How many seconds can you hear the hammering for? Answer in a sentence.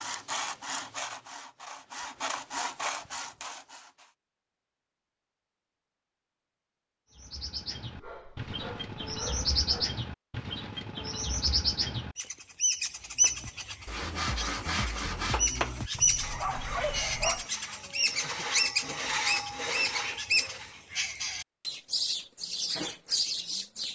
You can't hear the hammering here.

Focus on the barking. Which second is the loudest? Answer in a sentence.
The volume of the barking peaks at 17 seconds.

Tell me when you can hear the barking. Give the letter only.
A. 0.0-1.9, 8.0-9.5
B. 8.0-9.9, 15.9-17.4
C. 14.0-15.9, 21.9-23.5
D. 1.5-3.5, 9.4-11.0
B.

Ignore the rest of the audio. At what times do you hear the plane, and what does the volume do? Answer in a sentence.
The plane can't be heard in this clip.